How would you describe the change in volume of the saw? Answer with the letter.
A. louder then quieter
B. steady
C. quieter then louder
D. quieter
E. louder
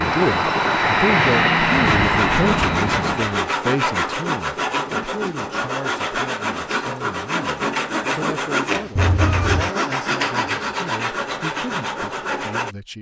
B.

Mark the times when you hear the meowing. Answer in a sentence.
You can hear the meowing from 1.1 to 3.1 s and from 8.9 to 9.7 s.